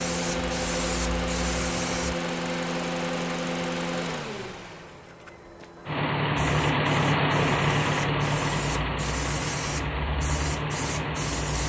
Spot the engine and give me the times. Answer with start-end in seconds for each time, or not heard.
0.0-11.6.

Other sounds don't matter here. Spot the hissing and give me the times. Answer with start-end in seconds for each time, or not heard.
0.0-2.1, 6.3-11.6.